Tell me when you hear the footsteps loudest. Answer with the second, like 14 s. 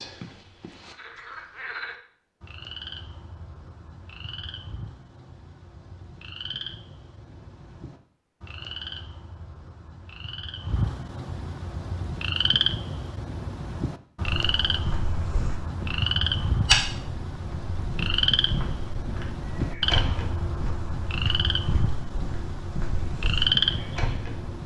17 s.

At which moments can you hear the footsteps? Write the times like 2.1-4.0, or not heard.
14.2-24.6.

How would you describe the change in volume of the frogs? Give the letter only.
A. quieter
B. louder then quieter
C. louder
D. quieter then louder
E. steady
C.